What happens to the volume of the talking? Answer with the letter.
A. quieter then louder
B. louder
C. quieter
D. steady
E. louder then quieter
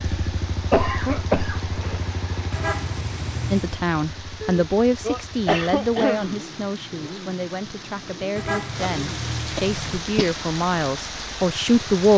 A.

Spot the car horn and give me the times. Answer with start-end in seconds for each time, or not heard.
2.5-3.8, 8.3-10.0.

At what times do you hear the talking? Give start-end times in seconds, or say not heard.
3.5-12.1.